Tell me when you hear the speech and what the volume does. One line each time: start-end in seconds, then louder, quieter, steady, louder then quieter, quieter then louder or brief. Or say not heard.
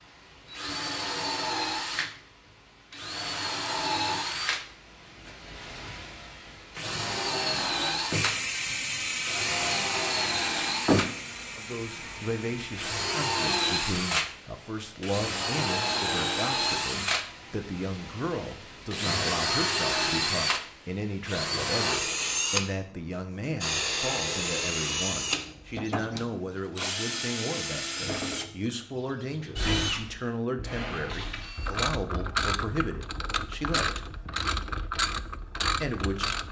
11.6-34.0 steady
35.8-36.4 brief.